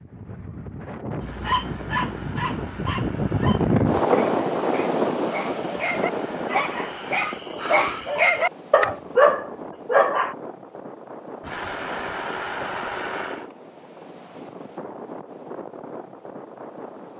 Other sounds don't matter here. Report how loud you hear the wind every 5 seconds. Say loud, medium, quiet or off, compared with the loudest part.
loud, medium, quiet, quiet.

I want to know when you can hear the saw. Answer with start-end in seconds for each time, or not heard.
1.1-4.0, 6.0-7.2, 11.4-13.5.